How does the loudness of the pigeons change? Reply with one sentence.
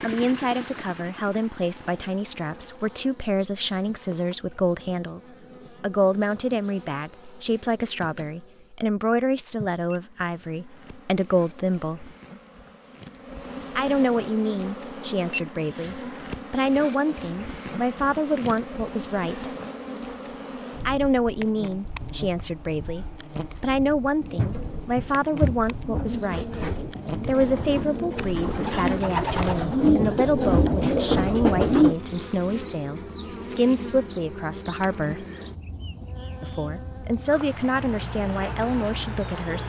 The loudness of the pigeons goes up.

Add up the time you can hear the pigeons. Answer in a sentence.
The pigeons can be heard for 8 seconds in total.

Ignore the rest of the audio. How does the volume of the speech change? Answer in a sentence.
The loudness of the speech stays about the same.